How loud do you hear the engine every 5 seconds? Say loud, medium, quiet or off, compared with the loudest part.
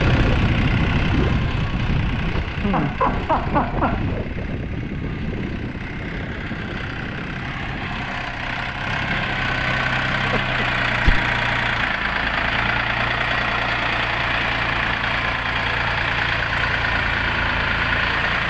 medium, medium, loud, loud.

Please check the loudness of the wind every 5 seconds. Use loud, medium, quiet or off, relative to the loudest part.
loud, medium, off, off.